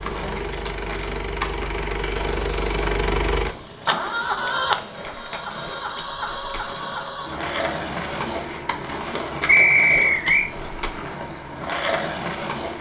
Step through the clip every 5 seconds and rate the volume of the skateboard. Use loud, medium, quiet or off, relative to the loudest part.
medium, loud, loud.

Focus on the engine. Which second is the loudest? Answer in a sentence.
The loudest moment of the engine is at 4 seconds.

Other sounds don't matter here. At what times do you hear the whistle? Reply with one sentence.
The whistle can be heard from 9.4 to 10.5 s.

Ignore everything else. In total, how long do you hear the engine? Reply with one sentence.
The engine can be heard for 13 seconds in total.